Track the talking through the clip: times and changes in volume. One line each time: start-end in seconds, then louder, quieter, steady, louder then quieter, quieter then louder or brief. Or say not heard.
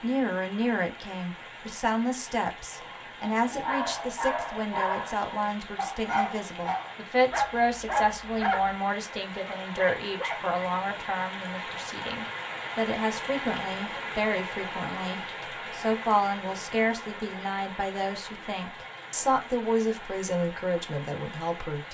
0.0-21.8 steady.